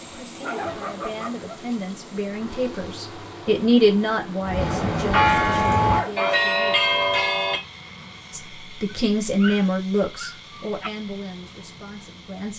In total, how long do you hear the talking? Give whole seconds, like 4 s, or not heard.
11 s.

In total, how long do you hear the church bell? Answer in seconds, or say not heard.
3 s.